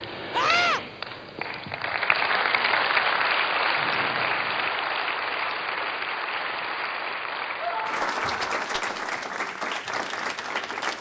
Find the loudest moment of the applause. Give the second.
3 s.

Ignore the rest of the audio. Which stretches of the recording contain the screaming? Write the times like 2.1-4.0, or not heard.
0.3-0.8, 7.5-8.5.